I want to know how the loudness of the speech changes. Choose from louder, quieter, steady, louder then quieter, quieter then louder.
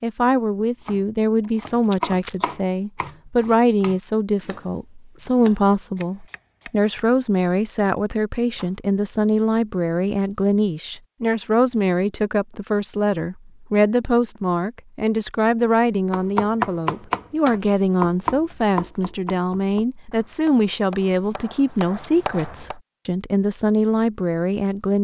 steady.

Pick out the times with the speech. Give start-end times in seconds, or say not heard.
0.0-24.9.